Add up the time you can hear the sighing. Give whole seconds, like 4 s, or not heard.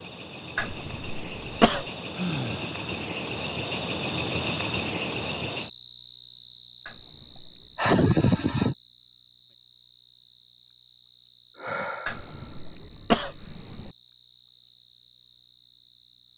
3 s.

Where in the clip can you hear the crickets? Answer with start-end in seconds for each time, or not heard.
0.0-16.3.